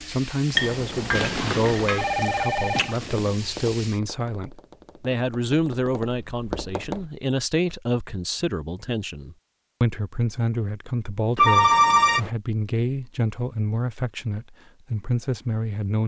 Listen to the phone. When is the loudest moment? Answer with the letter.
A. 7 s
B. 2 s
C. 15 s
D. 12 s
D.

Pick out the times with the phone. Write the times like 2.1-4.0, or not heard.
1.1-3.3, 11.3-12.3.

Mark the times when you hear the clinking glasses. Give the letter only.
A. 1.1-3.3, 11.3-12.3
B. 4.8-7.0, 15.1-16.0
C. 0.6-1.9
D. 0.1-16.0
C.